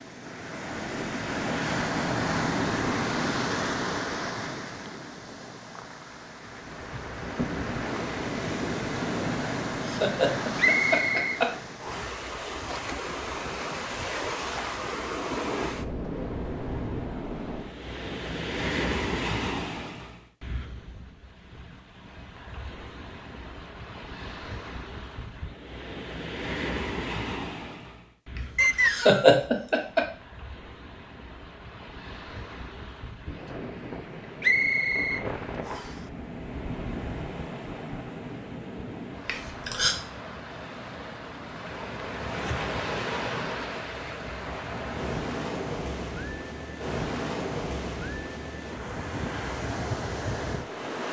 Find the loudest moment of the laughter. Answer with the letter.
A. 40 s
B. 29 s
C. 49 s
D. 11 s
B.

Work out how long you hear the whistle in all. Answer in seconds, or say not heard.
4 s.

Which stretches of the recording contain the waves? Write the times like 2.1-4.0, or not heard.
0.0-51.0.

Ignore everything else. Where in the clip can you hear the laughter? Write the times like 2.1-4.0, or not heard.
9.8-11.5, 28.9-30.0, 39.2-40.0.